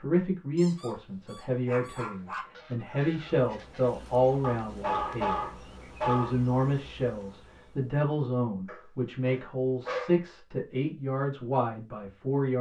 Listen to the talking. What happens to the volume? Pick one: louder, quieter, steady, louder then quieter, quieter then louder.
steady.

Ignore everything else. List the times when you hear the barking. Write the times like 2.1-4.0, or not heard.
0.6-2.5, 4.4-6.4, 8.7-10.2.